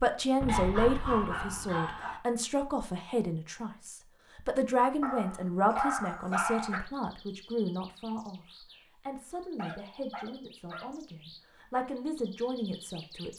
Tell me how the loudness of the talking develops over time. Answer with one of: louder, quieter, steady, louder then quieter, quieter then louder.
quieter.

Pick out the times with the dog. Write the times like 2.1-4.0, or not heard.
0.5-2.2, 5.0-6.8, 9.6-10.9.